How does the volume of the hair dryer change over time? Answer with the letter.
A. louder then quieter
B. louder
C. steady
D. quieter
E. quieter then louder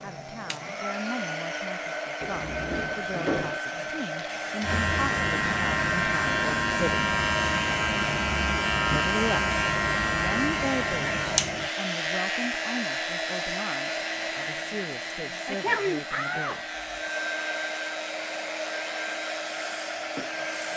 C.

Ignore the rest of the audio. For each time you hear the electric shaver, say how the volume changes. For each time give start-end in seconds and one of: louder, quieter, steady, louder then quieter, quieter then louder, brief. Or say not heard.
4.6-20.7 quieter.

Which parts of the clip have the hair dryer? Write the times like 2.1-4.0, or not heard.
0.0-20.7.